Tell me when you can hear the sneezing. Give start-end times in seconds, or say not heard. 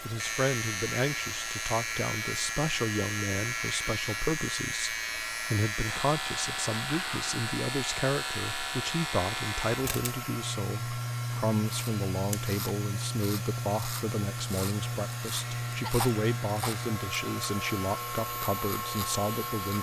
15.8-16.9.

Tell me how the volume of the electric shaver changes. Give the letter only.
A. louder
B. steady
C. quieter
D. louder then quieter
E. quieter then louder
B.